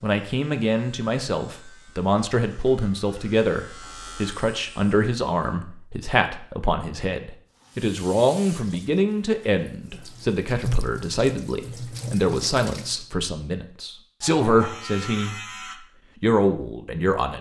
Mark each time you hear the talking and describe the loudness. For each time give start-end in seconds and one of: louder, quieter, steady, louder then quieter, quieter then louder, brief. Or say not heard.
0.0-15.3 steady
16.2-17.3 brief.